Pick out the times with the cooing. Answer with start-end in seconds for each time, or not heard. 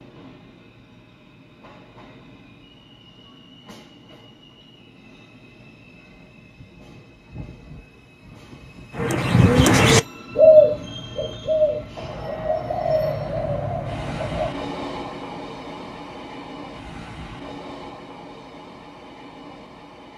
8.9-14.6.